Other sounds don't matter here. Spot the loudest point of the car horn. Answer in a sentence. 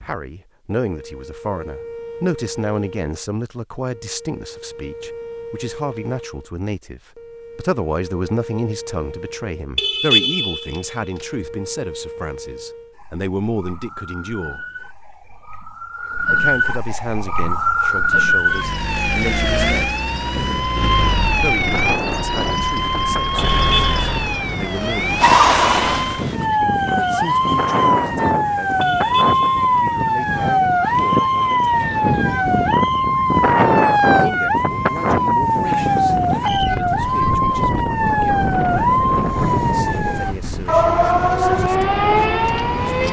The volume of the car horn peaks at 10 seconds.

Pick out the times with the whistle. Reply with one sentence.
You can't hear the whistle here.